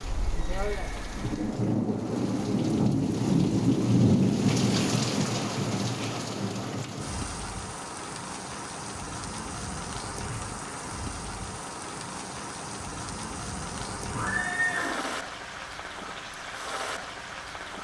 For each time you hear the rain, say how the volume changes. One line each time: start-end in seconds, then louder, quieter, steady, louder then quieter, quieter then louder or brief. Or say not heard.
0.0-17.7 quieter.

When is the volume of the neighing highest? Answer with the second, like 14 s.
15 s.